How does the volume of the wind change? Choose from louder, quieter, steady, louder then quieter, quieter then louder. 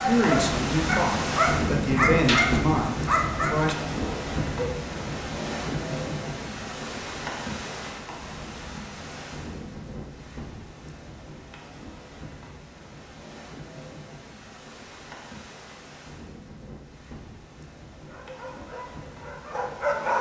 quieter.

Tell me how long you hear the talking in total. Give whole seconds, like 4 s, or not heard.
4 s.